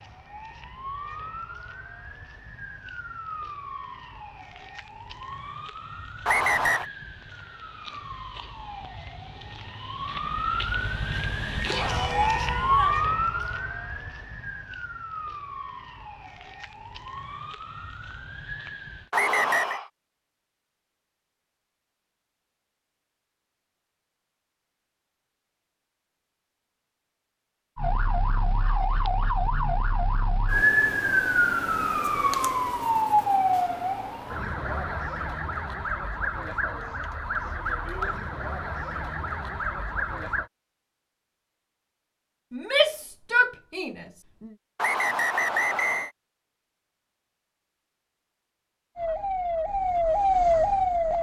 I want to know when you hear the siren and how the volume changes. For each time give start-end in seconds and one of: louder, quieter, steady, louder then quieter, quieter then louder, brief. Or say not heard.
0.0-19.1 louder then quieter
27.8-40.5 louder then quieter
49.0-51.1 brief.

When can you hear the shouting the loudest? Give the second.
43 s.